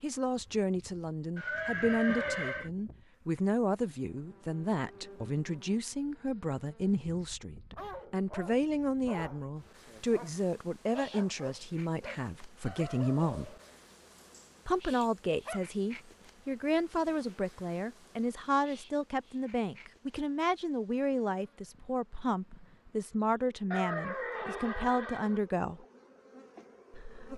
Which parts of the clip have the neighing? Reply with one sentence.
You can hear the neighing from 1.4 to 2.7 s and from 23.7 to 25.4 s.